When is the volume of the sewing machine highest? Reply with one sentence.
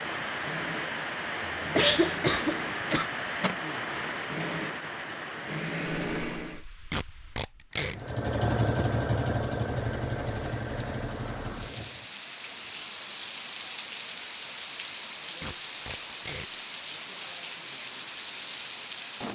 The volume of the sewing machine peaks at 9 seconds.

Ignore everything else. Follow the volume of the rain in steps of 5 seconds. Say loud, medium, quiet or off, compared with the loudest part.
loud, medium, loud, loud.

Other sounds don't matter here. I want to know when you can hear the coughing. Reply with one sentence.
You can hear the coughing from 1.6 to 3.0 s.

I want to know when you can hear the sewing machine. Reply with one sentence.
The sewing machine can be heard from 0.2 to 6.7 s and from 8.0 to 12.1 s.